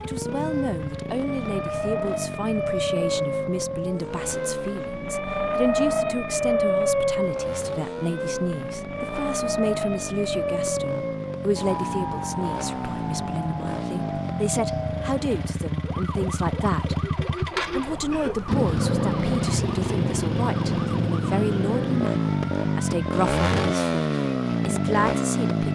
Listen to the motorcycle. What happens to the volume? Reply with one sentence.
The volume of the motorcycle goes up.